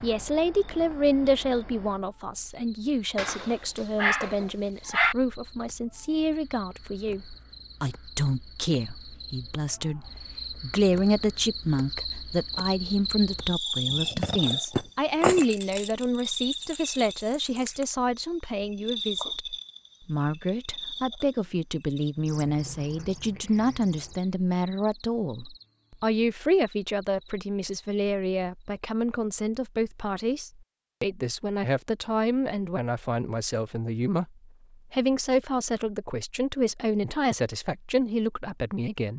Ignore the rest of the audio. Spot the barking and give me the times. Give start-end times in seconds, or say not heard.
3.1-5.2.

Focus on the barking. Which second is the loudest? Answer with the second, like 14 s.
5 s.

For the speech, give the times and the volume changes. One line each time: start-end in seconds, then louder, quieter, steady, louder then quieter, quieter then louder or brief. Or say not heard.
0.0-34.3 steady
34.9-39.1 steady.